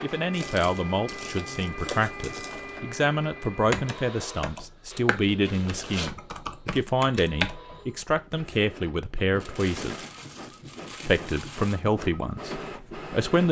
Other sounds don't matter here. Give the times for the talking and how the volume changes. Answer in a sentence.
The talking can be heard from 0.0 to 10.1 s, at a steady volume; and briefly from 11.1 to 13.4 s.